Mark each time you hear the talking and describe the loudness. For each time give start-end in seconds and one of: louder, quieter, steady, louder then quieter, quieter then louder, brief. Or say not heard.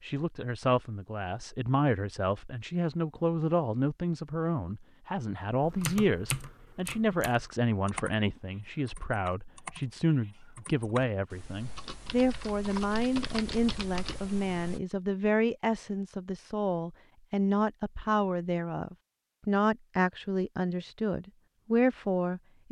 0.0-22.6 steady.